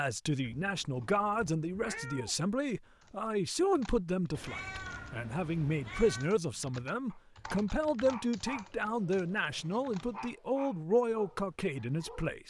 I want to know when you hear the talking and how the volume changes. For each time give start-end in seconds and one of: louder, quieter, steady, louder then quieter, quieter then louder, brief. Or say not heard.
0.0-12.4 steady.